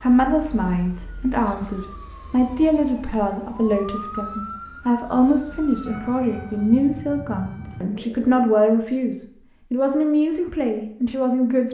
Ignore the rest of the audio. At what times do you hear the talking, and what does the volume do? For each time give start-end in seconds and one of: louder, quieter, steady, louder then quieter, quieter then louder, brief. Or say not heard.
0.0-11.6 steady.